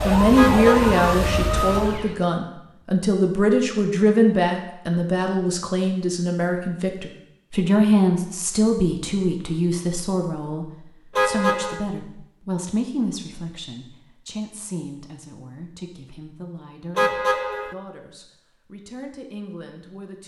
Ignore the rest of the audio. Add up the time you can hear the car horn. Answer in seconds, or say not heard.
2 s.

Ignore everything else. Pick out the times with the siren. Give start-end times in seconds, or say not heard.
0.0-2.1.